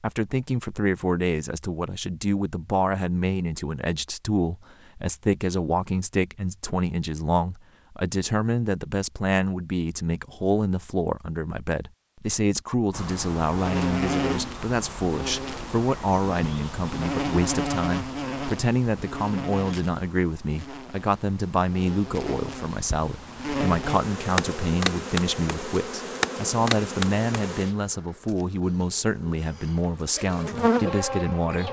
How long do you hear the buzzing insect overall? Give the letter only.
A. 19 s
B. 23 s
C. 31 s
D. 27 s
A.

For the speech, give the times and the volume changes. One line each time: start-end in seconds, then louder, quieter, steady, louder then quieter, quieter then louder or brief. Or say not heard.
0.0-31.6 steady.